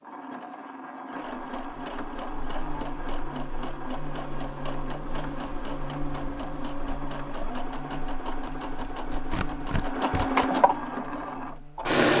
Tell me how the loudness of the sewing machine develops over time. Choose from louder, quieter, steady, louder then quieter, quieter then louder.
louder.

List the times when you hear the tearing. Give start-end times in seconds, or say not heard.
8.4-10.4.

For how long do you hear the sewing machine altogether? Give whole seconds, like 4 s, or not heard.
12 s.